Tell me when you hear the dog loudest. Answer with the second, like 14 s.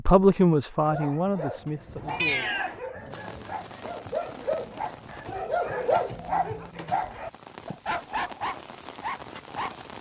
6 s.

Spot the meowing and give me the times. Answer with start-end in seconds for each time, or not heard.
2.0-2.8.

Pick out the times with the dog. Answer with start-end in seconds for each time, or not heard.
0.8-9.8.